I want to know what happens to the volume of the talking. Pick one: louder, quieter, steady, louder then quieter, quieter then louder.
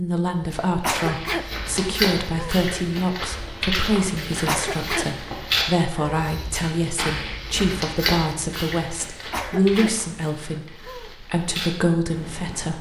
steady.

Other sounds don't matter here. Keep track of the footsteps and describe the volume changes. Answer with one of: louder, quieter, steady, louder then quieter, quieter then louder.
quieter.